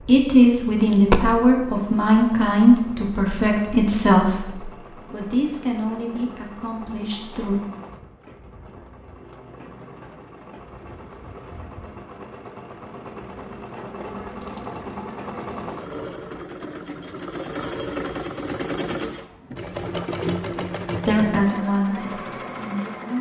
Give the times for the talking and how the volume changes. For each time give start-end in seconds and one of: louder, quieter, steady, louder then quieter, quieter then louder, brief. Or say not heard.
0.0-7.5 quieter
21.1-23.1 brief.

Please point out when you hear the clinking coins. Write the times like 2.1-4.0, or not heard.
0.8-1.4, 14.4-14.8.